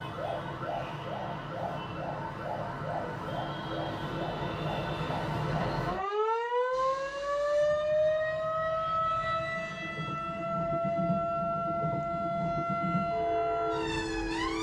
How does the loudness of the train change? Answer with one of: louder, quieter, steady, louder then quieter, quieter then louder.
louder.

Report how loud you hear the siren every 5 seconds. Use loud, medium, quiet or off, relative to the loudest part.
medium, loud, loud.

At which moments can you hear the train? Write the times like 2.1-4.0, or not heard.
6.7-14.5.